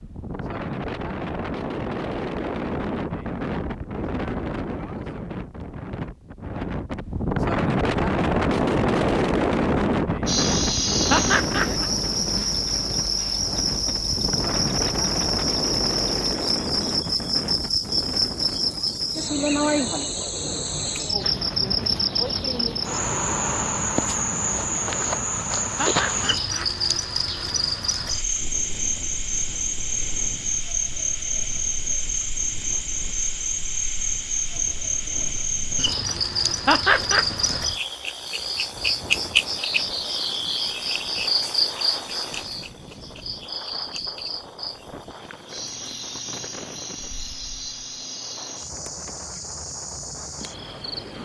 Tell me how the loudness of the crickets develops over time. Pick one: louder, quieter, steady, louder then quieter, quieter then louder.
quieter.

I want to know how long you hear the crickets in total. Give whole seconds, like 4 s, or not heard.
41 s.